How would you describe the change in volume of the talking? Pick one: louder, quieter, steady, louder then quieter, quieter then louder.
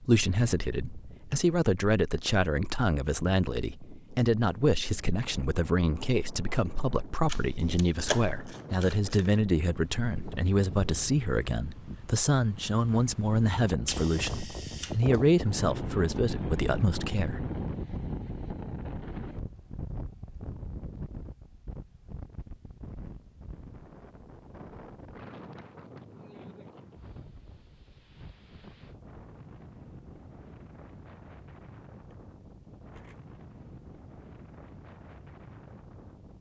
steady.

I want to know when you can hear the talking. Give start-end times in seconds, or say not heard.
0.0-17.4.